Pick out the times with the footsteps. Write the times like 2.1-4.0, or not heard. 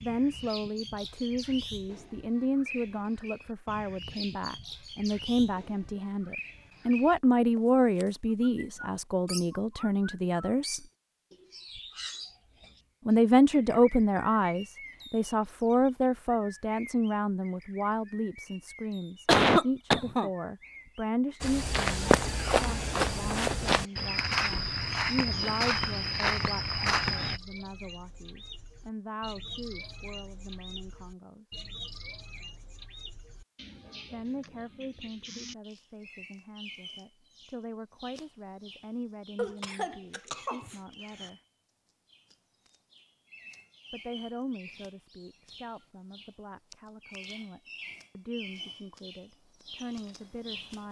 21.4-27.4.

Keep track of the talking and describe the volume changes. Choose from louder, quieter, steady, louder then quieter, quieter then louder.
quieter.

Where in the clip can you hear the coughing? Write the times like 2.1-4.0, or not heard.
19.2-20.3, 39.4-41.3.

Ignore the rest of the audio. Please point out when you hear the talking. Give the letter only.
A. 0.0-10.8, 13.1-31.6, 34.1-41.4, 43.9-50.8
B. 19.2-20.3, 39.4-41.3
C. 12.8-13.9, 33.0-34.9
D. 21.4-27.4
A.